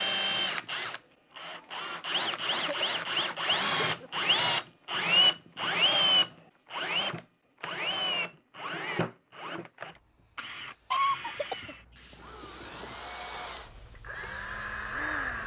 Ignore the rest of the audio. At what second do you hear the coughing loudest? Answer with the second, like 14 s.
11 s.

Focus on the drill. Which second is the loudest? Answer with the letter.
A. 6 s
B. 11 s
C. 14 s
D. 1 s
A.